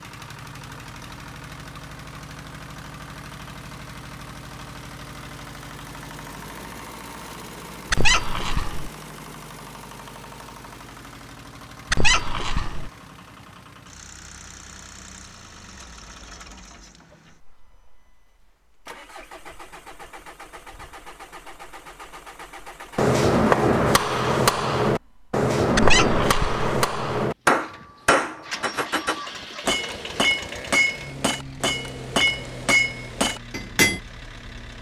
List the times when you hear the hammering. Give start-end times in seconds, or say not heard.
22.9-34.0.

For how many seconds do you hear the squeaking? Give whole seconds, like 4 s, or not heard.
3 s.